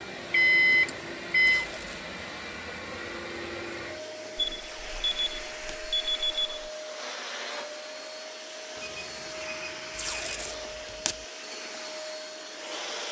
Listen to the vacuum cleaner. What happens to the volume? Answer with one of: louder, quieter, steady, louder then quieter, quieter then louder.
steady.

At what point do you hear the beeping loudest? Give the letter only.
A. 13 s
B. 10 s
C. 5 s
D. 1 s
D.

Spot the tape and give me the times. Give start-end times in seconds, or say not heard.
1.4-2.0, 4.5-5.8, 9.9-11.2.